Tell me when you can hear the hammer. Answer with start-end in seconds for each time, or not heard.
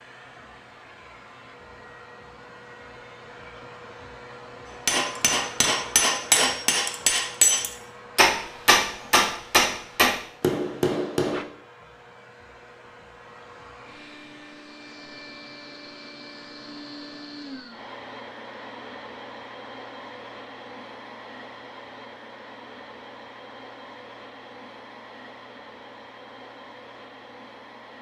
4.8-11.4.